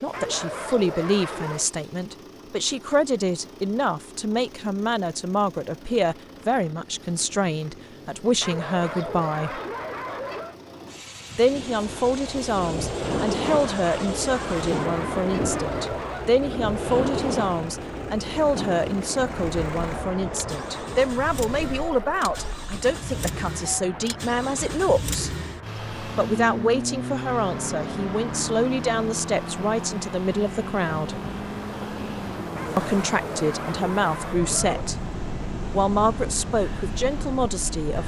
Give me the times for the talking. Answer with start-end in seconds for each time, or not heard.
0.0-9.6, 11.3-25.3, 26.1-31.2, 32.8-35.0, 35.7-38.0.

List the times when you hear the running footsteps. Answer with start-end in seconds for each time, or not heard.
not heard.